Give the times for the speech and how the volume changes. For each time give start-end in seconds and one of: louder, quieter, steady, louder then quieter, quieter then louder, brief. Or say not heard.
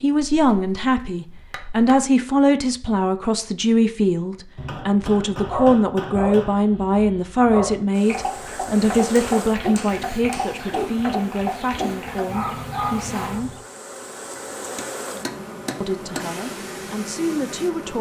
0.0-13.6 quieter
15.8-17.9 brief.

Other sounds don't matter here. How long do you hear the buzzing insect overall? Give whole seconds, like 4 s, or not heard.
10 s.